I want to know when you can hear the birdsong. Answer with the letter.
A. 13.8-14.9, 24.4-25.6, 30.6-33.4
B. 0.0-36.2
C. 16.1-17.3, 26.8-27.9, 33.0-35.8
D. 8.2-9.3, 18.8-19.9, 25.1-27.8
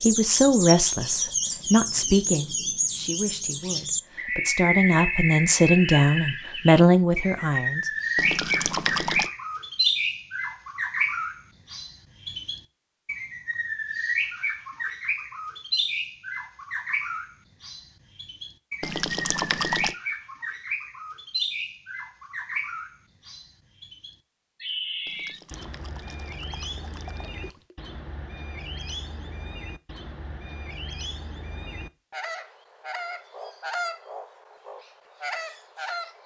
B.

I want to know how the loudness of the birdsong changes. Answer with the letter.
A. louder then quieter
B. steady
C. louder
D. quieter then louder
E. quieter
E.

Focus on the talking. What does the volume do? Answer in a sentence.
The loudness of the talking goes down, then up.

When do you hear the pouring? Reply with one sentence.
The pouring can be heard from 8.2 to 9.3 s, from 18.8 to 19.9 s and from 25.1 to 27.8 s.